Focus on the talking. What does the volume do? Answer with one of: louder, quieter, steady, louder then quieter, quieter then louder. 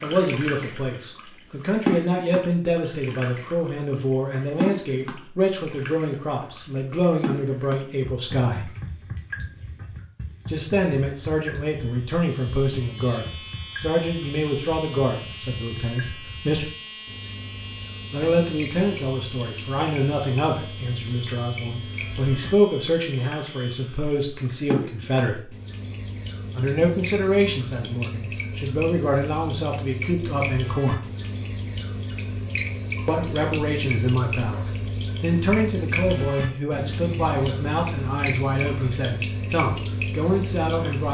steady.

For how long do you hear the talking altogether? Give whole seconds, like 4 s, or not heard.
35 s.